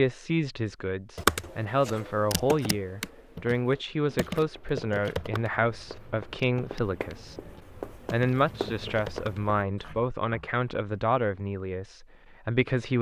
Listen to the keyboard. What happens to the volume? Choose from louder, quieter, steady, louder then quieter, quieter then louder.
quieter then louder.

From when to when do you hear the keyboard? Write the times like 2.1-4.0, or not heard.
1.1-10.0.